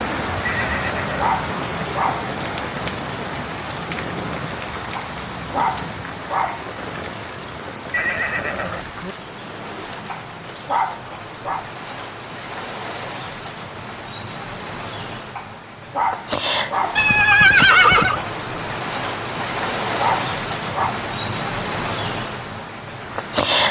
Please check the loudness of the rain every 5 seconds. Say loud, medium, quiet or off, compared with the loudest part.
loud, medium, medium, loud, loud.